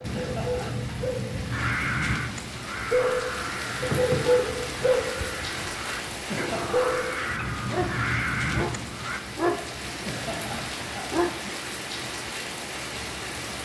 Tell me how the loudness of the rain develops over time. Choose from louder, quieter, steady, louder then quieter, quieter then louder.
steady.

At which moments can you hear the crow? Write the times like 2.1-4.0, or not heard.
1.4-9.2.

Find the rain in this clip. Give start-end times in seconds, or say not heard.
0.0-13.5.